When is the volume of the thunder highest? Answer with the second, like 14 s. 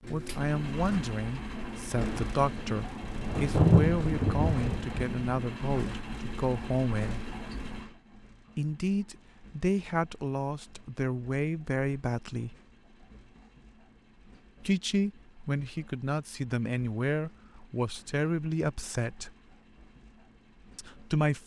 4 s.